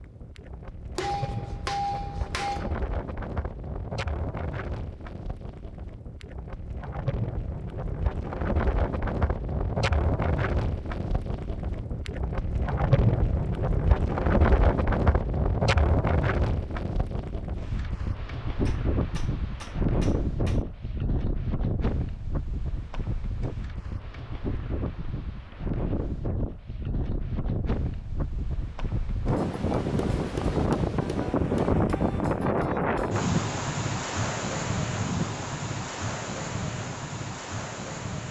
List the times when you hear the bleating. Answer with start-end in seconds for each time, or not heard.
not heard.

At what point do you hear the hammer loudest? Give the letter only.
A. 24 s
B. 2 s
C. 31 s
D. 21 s
B.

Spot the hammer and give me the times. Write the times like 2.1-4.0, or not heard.
0.9-2.8, 18.6-20.6, 30.1-31.8.